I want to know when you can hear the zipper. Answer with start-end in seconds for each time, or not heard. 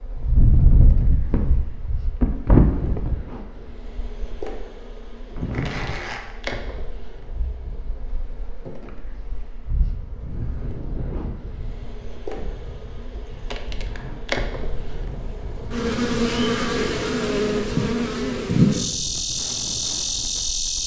5.5-6.3.